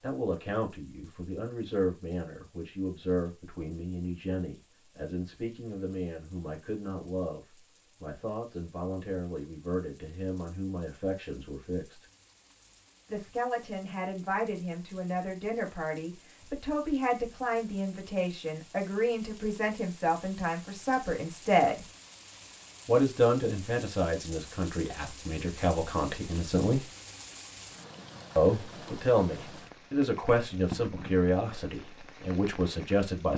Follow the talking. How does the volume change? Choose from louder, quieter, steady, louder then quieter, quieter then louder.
louder.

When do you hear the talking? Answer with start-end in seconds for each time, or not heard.
0.0-12.1, 13.1-21.9, 22.9-26.9, 28.4-33.3.